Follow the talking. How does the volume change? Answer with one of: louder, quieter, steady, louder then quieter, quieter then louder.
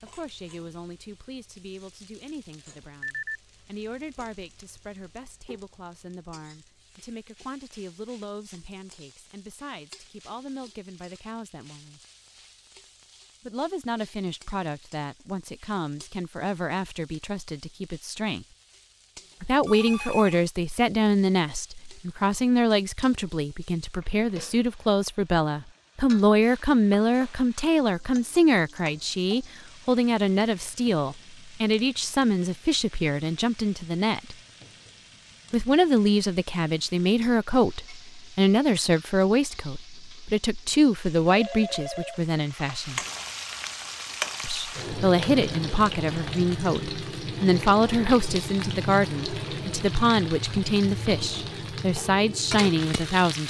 louder.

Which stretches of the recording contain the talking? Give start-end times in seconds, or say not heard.
0.0-12.0, 13.4-18.4, 19.4-34.4, 35.5-43.0, 44.4-53.4.